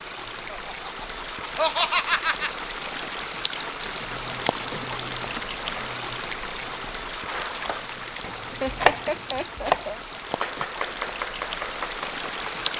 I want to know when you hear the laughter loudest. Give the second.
2 s.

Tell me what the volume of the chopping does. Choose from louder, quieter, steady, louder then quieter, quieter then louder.
louder then quieter.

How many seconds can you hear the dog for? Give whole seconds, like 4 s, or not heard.
not heard.